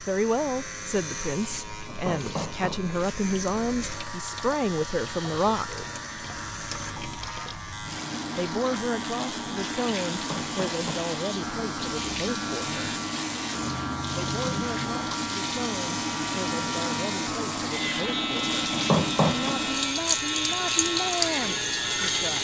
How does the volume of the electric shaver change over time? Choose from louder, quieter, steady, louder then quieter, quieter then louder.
louder.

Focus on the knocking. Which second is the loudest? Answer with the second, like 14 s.
19 s.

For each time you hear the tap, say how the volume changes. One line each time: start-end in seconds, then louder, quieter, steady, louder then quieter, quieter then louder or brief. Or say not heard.
0.0-22.3 louder.